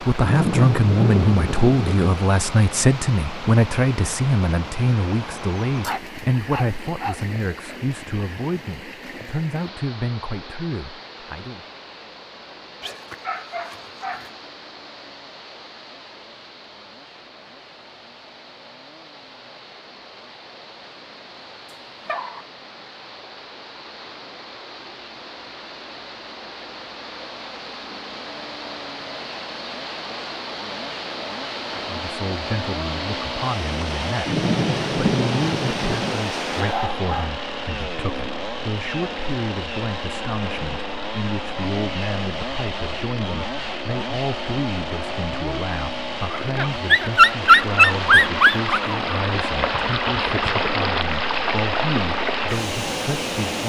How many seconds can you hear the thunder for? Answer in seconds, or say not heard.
4 s.